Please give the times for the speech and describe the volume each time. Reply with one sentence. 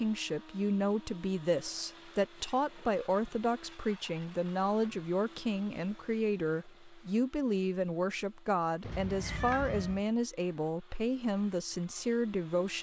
You can hear the speech from 0.0 to 12.7 s, at a steady volume.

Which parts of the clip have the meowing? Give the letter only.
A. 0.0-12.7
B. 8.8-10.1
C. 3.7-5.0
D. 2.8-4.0
B.